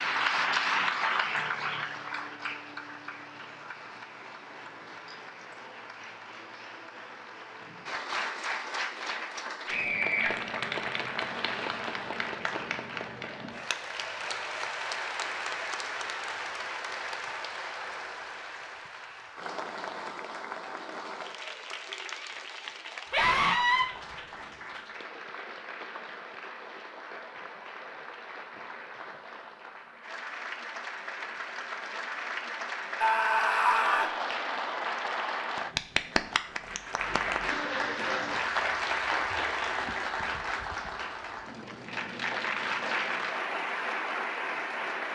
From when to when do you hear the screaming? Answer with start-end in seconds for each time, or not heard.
9.7-10.3, 23.1-23.9, 33.0-34.1.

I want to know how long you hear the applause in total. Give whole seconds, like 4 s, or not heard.
45 s.